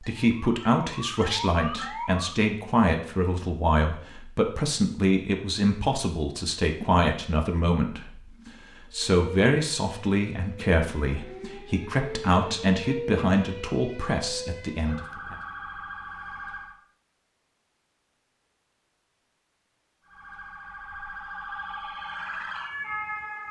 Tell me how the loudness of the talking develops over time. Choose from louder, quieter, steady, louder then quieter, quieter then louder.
steady.